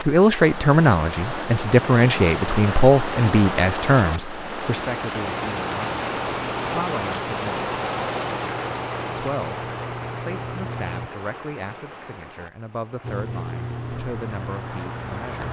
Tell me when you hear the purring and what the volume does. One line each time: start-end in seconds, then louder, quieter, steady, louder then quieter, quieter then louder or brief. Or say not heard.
5.2-11.1 louder
13.0-15.4 brief.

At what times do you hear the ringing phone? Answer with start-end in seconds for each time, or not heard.
not heard.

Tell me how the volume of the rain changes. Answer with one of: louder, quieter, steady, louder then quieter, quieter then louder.
quieter.